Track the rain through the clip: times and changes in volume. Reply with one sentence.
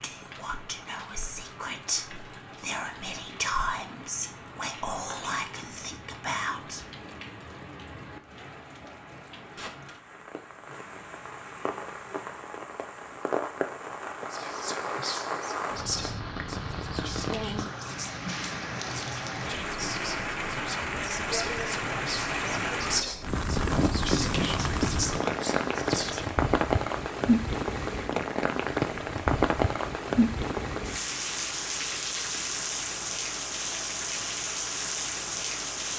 The rain can be heard from 0.0 to 35.9 s, getting louder.